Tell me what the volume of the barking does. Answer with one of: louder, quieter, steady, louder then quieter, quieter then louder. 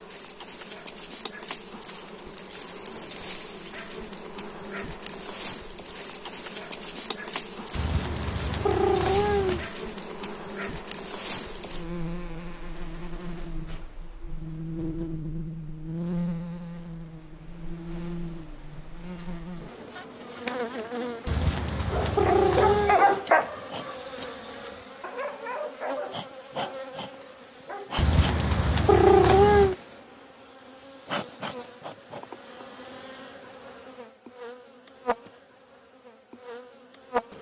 quieter.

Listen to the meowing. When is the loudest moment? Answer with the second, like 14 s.
29 s.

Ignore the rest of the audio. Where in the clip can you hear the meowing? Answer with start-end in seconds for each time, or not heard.
7.7-9.7, 21.2-23.1, 27.9-29.8.